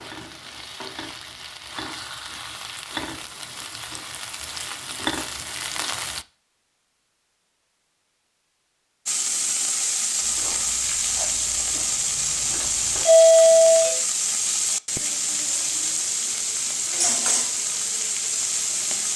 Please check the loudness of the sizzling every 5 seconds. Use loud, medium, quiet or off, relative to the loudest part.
medium, loud, loud, loud.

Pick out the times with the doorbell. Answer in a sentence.
The doorbell can be heard from 13.1 to 13.9 s.